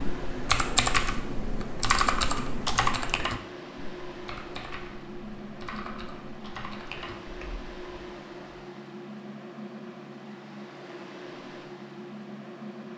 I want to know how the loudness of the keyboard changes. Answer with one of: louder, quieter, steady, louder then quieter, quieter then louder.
quieter.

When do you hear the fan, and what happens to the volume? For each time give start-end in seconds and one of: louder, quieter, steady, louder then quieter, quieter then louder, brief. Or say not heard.
0.0-12.9 steady.